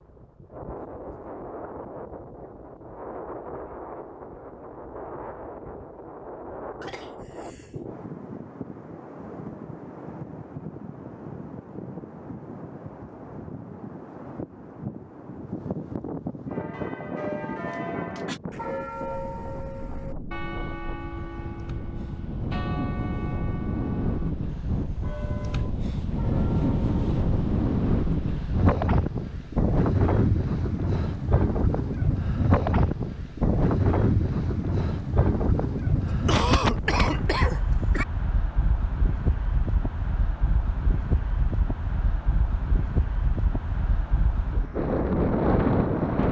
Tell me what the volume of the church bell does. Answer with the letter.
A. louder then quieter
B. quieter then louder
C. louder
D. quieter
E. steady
D.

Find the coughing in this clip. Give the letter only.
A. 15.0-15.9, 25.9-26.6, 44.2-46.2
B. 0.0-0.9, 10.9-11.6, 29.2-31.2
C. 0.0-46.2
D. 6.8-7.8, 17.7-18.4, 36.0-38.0
D.